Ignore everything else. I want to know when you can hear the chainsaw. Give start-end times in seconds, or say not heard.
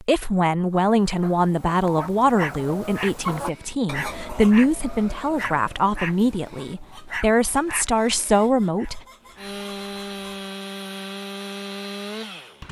9.2-12.6.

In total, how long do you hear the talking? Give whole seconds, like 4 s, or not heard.
9 s.